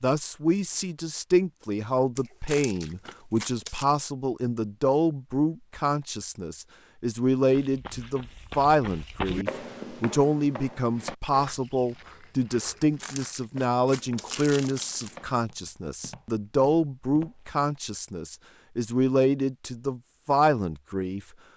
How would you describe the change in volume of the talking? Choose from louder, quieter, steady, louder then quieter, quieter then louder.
steady.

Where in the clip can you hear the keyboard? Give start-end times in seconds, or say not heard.
not heard.